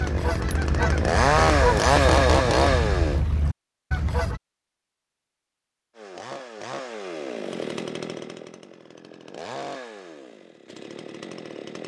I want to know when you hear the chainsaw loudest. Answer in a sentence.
The loudest moment of the chainsaw is at 2 seconds.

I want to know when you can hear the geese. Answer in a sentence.
The geese can be heard from 0.0 to 4.4 s.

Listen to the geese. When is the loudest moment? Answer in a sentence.
The loudest moment of the geese is at 2 seconds.